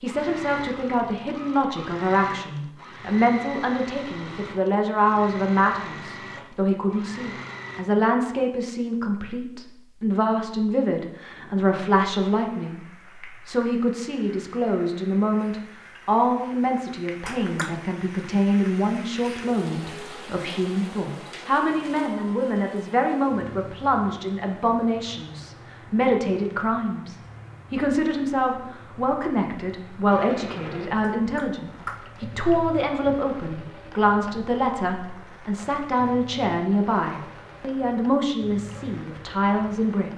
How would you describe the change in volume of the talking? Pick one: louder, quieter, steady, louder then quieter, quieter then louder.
steady.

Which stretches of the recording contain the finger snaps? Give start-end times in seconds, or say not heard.
17.2-17.9, 31.2-32.2.